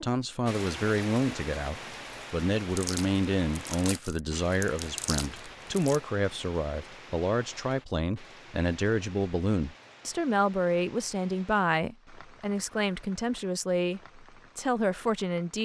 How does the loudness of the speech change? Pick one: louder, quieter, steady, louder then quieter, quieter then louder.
steady.